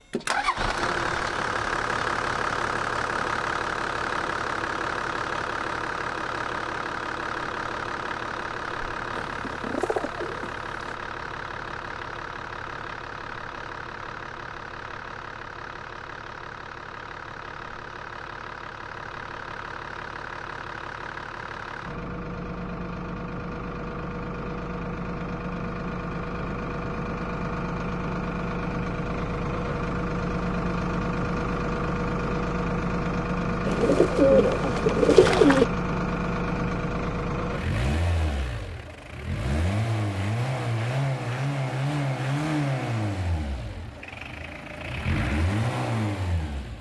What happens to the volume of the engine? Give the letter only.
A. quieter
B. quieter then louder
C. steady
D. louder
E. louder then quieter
B.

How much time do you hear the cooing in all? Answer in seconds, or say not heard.
4 s.